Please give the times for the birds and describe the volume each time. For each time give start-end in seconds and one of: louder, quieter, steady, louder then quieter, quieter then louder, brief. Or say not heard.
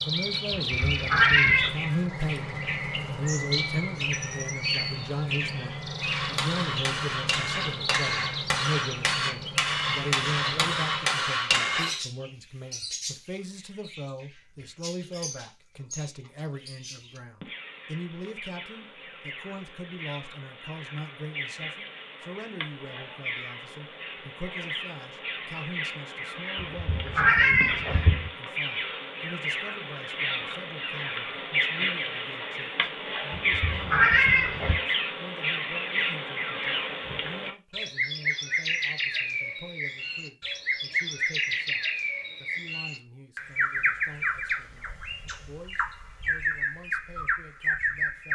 0.0-48.3 quieter then louder.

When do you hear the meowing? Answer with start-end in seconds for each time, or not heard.
0.5-1.8, 26.6-28.3, 33.3-34.8.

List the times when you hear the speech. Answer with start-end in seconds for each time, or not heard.
0.1-44.9, 45.5-48.3.